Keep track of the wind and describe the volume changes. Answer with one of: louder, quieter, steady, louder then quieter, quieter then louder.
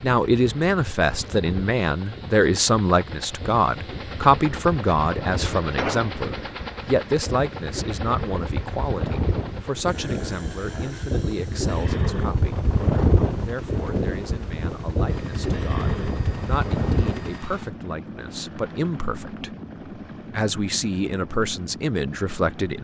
louder.